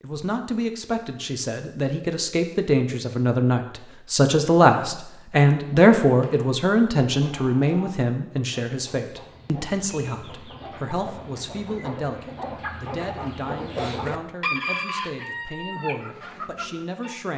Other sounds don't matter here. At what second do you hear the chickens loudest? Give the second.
15 s.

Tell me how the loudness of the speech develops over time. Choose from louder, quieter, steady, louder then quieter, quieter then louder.
louder then quieter.